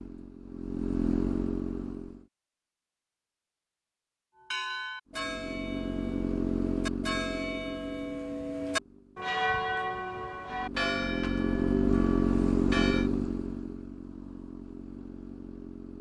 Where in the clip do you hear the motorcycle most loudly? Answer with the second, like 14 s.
12 s.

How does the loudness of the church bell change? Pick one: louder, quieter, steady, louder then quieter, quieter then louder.
louder then quieter.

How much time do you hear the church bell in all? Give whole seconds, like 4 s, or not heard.
9 s.